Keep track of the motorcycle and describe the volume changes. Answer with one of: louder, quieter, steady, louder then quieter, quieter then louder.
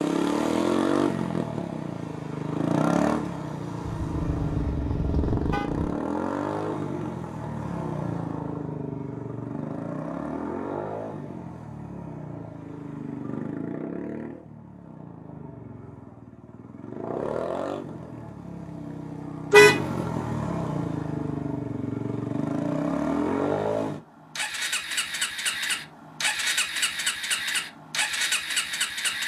quieter then louder.